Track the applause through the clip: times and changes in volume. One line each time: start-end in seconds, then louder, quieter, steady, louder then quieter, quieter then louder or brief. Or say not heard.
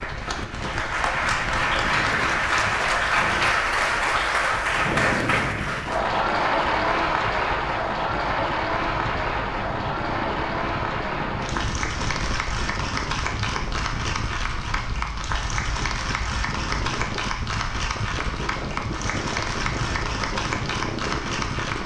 0.0-21.8 quieter.